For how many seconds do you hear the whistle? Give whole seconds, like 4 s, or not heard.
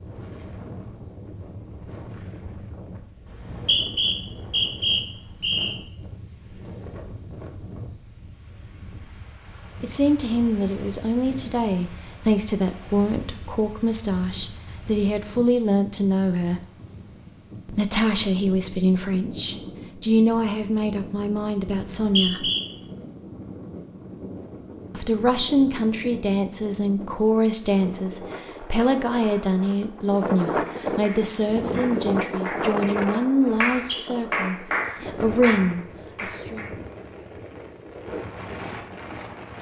4 s.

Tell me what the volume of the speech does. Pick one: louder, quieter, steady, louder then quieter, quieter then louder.
steady.